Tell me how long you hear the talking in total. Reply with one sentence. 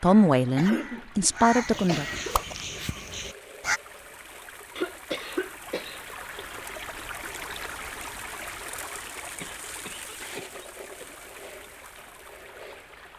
You can hear the talking for 2 seconds altogether.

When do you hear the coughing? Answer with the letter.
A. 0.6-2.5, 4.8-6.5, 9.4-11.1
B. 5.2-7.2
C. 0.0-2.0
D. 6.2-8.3
A.